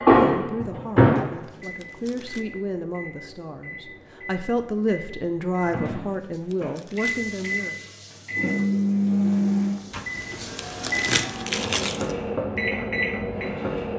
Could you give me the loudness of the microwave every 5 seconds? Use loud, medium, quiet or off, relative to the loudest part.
loud, loud, medium.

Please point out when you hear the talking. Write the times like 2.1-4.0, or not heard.
0.1-7.9.